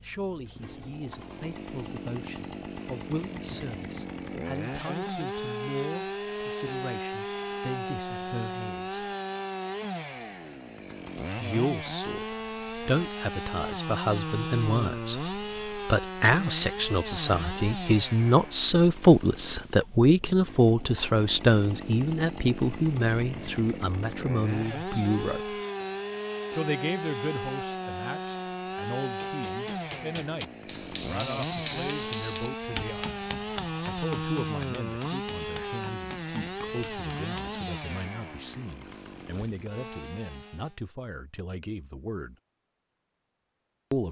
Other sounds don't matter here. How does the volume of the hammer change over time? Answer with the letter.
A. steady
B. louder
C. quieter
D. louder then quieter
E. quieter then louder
D.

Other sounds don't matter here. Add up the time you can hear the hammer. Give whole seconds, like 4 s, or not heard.
8 s.